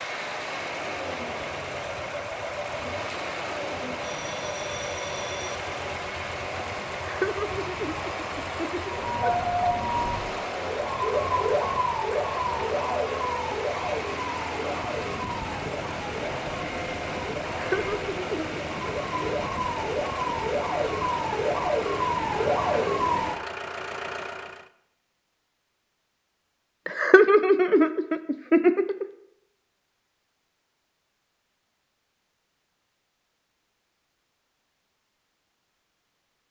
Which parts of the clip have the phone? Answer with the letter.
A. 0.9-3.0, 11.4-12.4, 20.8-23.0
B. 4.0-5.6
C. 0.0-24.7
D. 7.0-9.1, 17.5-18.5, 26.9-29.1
B.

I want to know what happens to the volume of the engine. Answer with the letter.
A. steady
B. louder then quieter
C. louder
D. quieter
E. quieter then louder
A.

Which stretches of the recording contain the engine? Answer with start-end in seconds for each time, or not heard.
0.0-24.7.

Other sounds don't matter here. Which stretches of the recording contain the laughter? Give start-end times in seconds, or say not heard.
7.0-9.1, 17.5-18.5, 26.9-29.1.